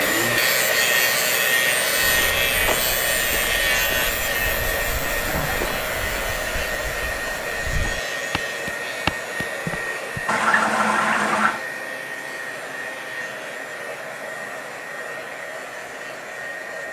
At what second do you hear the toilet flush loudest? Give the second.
11 s.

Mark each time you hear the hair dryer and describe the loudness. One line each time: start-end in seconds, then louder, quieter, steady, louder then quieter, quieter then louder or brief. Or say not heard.
0.0-16.8 quieter.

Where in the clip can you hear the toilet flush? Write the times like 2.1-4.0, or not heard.
5.0-5.8, 10.2-11.6.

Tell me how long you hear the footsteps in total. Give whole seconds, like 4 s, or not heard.
8 s.